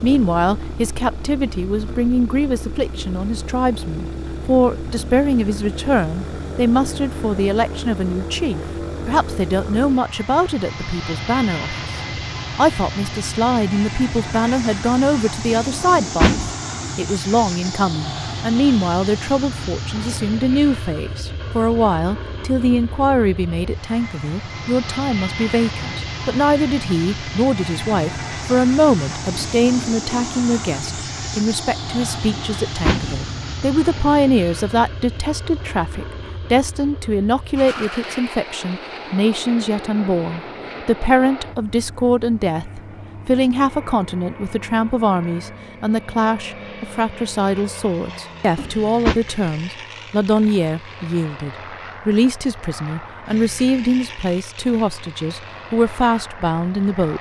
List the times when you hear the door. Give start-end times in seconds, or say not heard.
15.7-16.6, 32.4-33.2, 48.5-49.1.